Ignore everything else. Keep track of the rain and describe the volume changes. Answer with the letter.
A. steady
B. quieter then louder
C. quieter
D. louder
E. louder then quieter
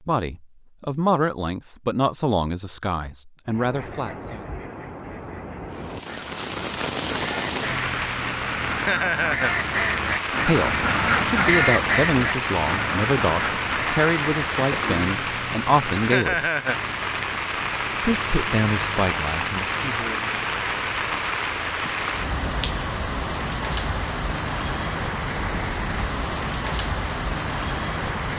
A.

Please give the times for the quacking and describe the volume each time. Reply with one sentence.
You can hear the quacking from 3.5 to 15.1 s, getting louder then quieter.